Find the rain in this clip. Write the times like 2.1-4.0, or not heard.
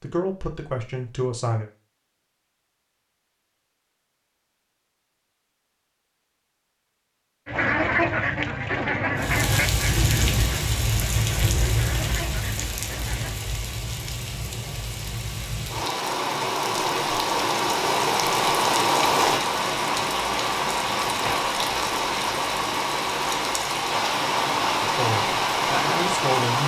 9.2-26.6.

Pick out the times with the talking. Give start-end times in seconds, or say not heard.
0.0-1.6, 24.8-26.6.